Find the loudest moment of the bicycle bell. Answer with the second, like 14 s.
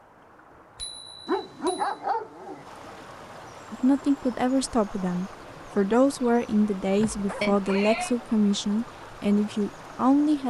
8 s.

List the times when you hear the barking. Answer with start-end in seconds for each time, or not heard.
1.2-2.6, 7.0-8.0.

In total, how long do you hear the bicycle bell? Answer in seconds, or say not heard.
2 s.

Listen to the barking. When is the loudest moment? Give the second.
2 s.